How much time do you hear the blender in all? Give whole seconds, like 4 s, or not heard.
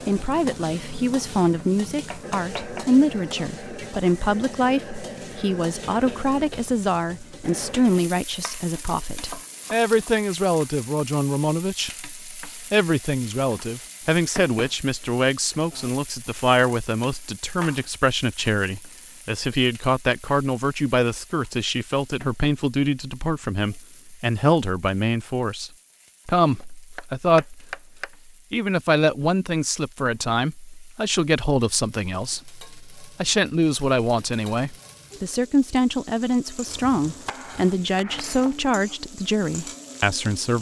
not heard.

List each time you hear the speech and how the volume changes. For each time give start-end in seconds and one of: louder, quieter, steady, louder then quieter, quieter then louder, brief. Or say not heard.
0.1-27.8 steady
28.5-40.5 steady.